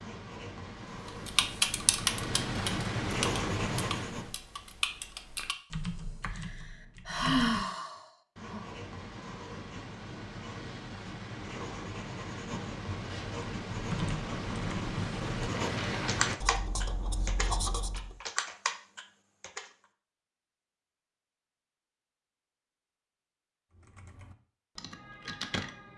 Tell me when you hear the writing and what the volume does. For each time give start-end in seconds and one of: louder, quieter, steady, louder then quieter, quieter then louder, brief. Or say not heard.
0.0-4.3 louder
8.0-18.2 louder.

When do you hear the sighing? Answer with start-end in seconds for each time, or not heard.
6.3-8.7.